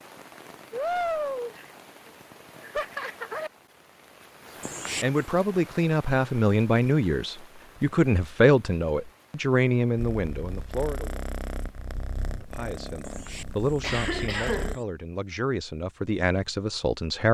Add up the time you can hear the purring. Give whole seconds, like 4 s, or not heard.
5 s.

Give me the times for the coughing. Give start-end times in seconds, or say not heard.
4.6-5.2, 13.1-14.8.